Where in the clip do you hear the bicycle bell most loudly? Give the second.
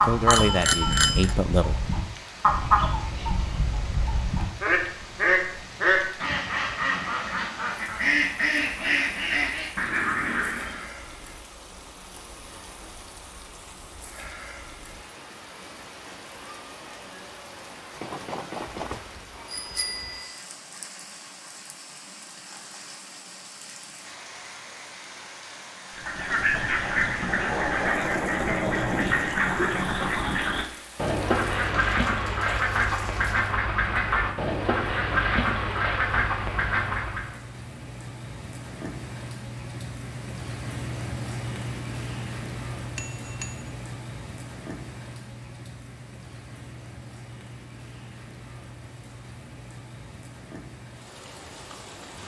1 s.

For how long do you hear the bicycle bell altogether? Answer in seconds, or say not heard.
4 s.